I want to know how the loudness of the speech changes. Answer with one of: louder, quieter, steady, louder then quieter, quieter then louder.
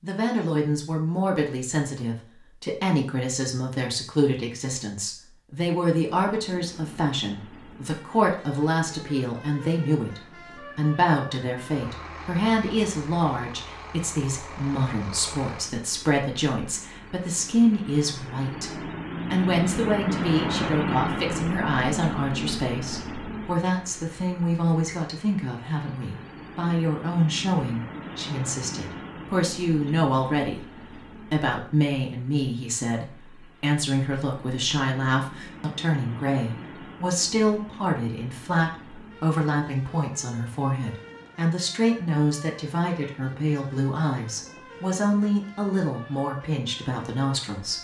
steady.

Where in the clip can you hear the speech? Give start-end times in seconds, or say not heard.
0.0-30.6, 31.3-47.7.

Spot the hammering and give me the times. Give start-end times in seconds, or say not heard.
not heard.